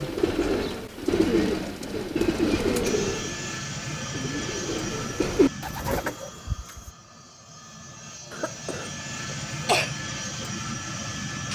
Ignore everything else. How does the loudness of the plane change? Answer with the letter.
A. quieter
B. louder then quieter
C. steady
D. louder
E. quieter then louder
E.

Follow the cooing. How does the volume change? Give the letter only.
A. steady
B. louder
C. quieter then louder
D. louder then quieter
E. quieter
C.